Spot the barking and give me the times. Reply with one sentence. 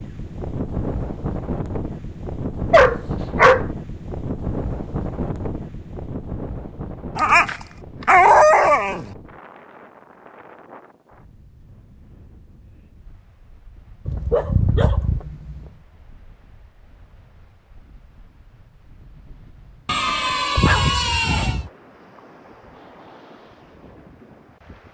The barking can be heard from 2.7 to 3.6 s, from 7.2 to 9.1 s, from 14.1 to 15.6 s and from 19.9 to 21.7 s.